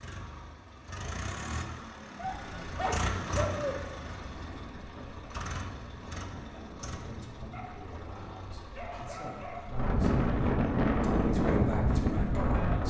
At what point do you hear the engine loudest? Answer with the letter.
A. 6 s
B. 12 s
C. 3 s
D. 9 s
C.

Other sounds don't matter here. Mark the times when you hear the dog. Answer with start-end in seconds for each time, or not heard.
2.1-3.8, 7.5-9.8.